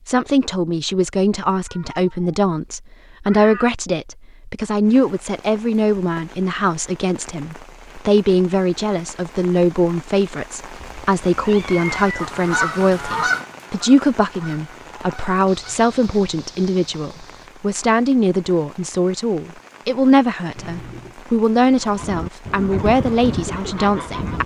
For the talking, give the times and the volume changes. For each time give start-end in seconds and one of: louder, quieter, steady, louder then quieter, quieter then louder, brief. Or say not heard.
0.1-24.4 steady.